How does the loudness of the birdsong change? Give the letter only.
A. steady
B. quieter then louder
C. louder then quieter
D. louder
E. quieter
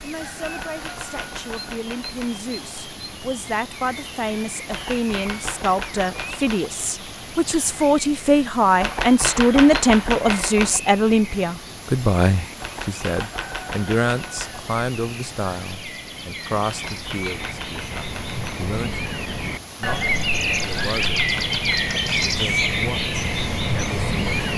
D.